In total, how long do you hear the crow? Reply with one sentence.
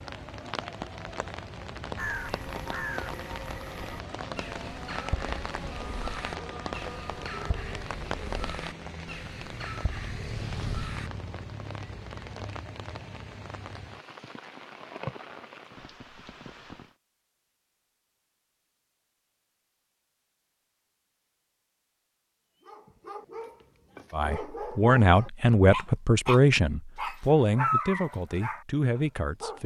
The crow can be heard for 9 seconds in total.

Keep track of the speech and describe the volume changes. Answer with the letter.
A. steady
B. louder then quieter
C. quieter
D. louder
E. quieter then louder
C.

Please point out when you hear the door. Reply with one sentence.
The door can't be heard in this clip.